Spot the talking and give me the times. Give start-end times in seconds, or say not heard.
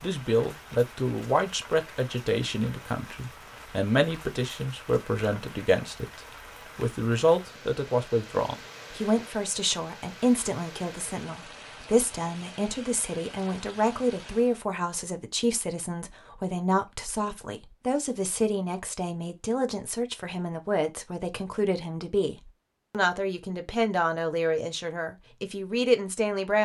0.0-26.6.